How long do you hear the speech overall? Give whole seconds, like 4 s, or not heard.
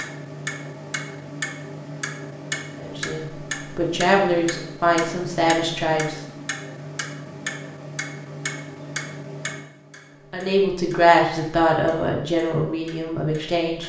7 s.